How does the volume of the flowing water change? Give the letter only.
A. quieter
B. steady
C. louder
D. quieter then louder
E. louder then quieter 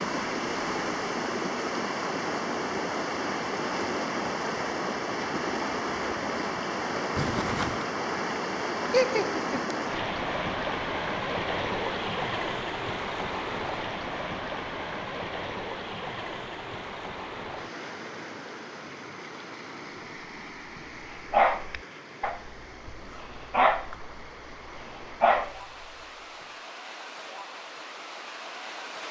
A.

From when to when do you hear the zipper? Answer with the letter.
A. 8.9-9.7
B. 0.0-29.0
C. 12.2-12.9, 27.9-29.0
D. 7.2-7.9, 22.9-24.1
D.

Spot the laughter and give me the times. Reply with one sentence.
You can hear the laughter from 8.9 to 9.7 s.